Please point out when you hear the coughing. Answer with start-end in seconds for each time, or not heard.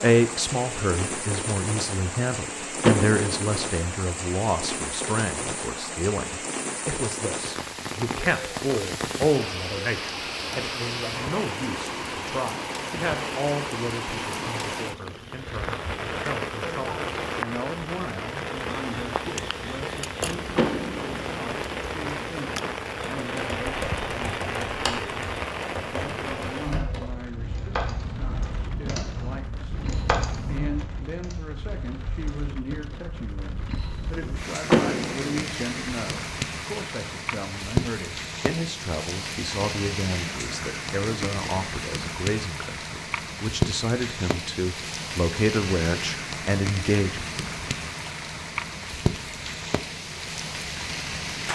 not heard.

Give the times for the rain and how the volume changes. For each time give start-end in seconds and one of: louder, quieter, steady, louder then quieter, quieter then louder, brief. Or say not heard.
0.0-51.5 steady.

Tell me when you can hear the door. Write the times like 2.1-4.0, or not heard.
2.8-3.6, 20.6-21.3, 34.7-35.5.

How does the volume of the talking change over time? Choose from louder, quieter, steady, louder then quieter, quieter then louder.
quieter then louder.